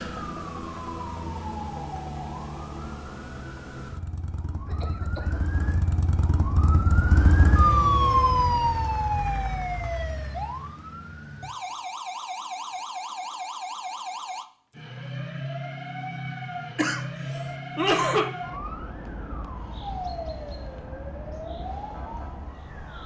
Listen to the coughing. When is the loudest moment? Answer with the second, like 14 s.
18 s.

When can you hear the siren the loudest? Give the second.
8 s.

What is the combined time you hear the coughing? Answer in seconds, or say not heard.
2 s.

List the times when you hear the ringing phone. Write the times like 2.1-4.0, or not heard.
not heard.